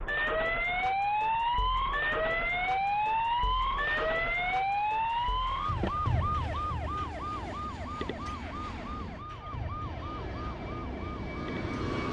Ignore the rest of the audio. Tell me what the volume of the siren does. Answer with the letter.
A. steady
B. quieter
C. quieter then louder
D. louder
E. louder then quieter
B.